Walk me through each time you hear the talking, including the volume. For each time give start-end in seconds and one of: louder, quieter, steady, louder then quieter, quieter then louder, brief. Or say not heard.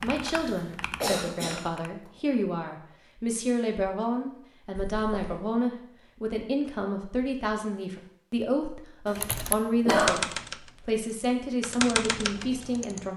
0.0-13.1 steady.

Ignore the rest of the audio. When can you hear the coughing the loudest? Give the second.
10 s.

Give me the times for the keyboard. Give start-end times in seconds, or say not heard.
0.0-1.9, 9.2-13.1.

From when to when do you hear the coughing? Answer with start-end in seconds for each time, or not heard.
0.3-2.1, 4.8-5.4, 9.1-10.2.